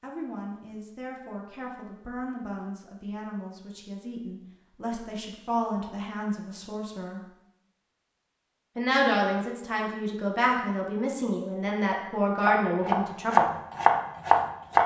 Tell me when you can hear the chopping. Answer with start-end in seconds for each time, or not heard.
12.3-14.8.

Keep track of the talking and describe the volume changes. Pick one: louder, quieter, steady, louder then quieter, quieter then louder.
louder.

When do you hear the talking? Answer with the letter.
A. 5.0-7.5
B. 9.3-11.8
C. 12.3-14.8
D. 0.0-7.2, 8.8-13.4
D.